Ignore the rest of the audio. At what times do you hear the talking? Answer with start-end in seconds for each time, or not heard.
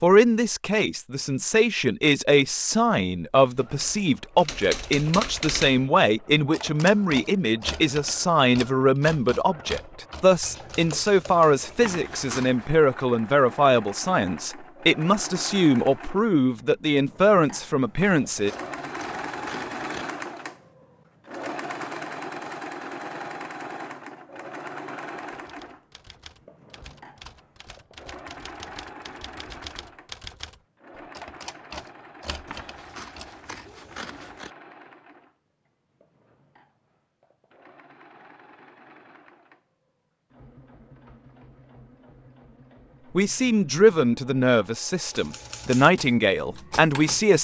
0.0-18.5, 43.1-47.3.